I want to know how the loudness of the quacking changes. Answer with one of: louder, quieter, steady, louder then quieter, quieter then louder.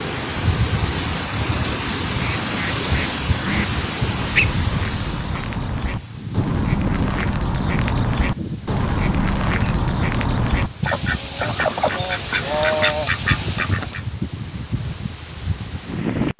louder.